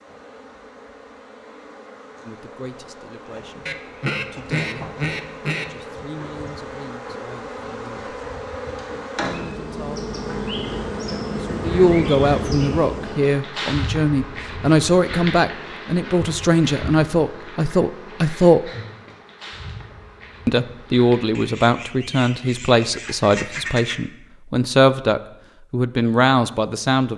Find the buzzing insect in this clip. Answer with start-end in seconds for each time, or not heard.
0.0-21.6.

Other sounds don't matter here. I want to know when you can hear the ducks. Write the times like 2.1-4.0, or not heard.
3.6-5.7, 11.5-12.7, 21.4-24.1.